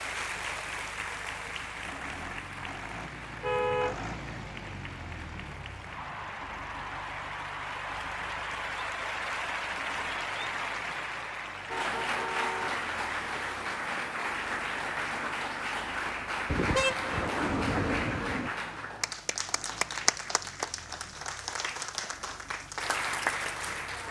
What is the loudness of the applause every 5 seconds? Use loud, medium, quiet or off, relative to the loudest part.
medium, loud, loud, loud, loud.